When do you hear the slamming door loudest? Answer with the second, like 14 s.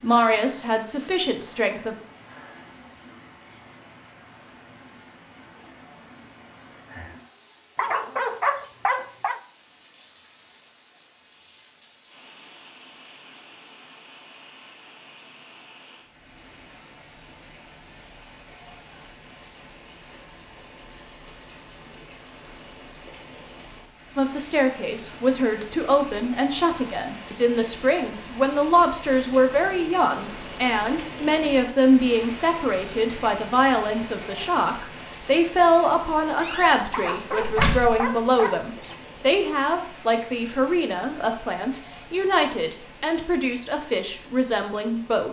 38 s.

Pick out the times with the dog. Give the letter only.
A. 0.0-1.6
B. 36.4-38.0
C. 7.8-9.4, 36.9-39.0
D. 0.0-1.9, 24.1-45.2
C.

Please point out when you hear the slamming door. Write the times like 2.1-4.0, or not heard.
36.4-38.0.